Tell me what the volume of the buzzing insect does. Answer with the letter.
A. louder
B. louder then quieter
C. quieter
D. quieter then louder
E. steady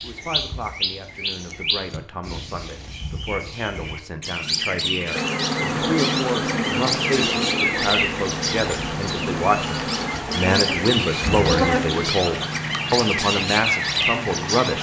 D.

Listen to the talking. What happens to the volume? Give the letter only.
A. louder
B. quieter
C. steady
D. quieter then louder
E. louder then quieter
A.